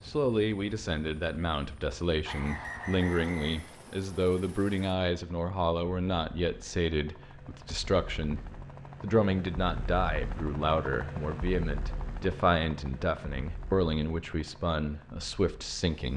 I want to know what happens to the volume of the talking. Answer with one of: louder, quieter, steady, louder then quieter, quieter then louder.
steady.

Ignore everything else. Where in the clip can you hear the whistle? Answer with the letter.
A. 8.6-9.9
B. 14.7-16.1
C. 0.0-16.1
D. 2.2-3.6
D.